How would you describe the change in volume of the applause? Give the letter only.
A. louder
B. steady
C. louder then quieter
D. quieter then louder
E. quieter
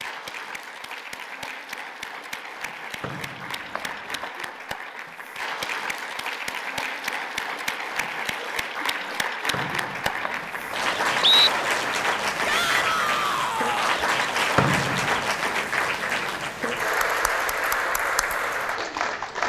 A.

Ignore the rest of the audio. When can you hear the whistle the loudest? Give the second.
11 s.